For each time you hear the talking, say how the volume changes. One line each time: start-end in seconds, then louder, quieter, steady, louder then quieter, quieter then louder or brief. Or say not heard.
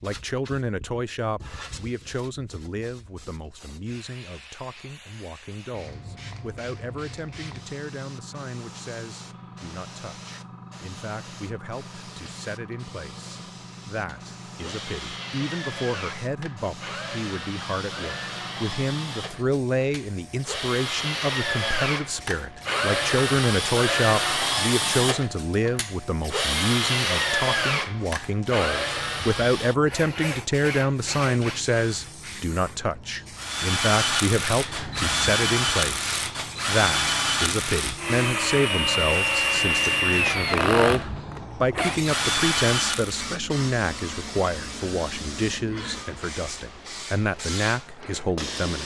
0.0-48.7 louder.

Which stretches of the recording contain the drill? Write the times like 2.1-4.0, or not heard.
14.1-32.1, 33.4-43.3.